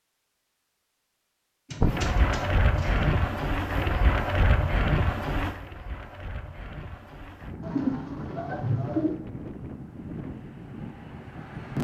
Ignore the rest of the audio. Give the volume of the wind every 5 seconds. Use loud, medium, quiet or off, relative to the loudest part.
loud, medium, medium.